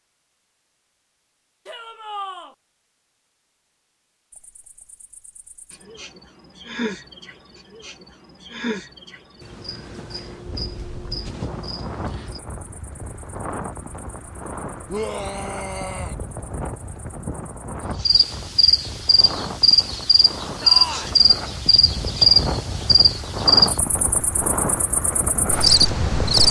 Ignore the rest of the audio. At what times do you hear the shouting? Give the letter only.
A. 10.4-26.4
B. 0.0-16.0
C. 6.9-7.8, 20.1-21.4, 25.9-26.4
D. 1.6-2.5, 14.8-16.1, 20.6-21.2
D.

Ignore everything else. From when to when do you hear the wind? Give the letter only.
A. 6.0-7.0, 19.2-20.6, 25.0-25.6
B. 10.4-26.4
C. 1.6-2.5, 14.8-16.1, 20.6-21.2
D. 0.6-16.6
B.